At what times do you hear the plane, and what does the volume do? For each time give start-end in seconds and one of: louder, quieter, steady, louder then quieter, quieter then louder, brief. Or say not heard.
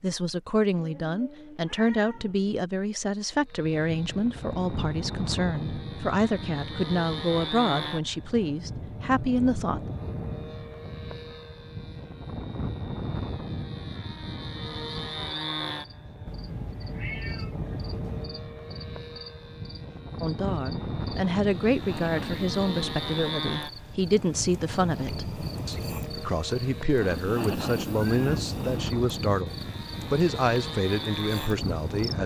3.5-32.2 steady.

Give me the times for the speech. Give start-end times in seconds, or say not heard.
0.0-9.9, 20.2-32.2.